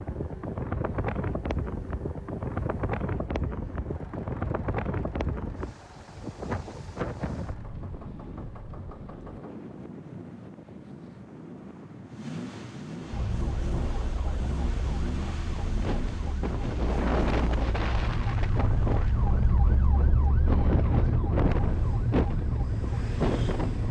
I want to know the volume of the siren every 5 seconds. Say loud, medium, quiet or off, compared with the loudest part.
off, off, medium, loud, loud.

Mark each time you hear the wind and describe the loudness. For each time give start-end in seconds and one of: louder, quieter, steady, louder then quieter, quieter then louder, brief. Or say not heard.
0.0-23.8 quieter then louder.